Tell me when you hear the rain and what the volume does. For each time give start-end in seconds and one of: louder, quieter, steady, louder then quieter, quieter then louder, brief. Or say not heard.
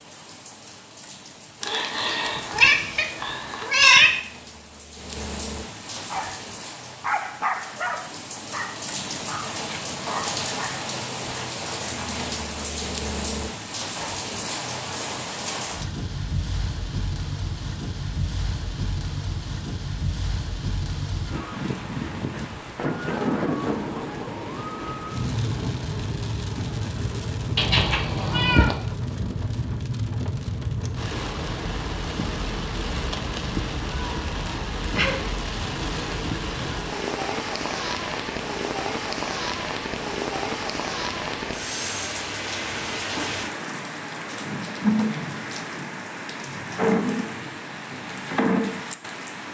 0.0-49.4 louder.